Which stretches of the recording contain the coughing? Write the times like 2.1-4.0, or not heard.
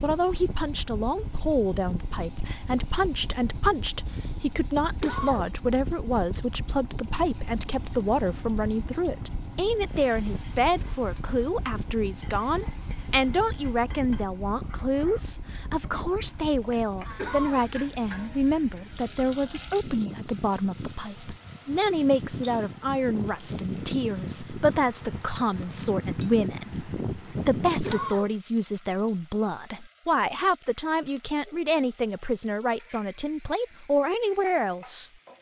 5.0-5.5, 17.1-17.7, 27.8-28.4.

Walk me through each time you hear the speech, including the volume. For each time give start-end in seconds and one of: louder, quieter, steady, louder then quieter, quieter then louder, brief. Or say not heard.
0.0-35.1 steady.